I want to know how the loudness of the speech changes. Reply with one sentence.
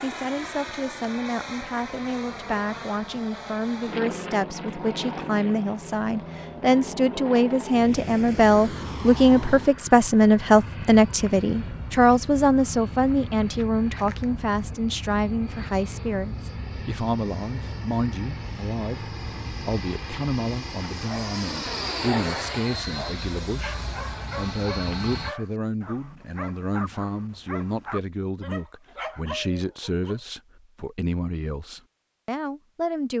The volume of the speech goes up, then down.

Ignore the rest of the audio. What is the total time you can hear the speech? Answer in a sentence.
You can hear the speech for 33 seconds altogether.